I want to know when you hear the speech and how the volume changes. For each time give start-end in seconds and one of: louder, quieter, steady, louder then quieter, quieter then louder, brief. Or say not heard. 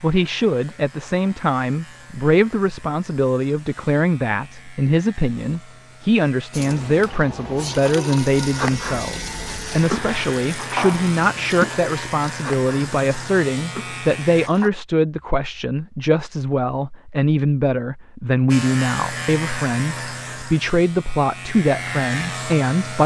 0.0-23.0 steady.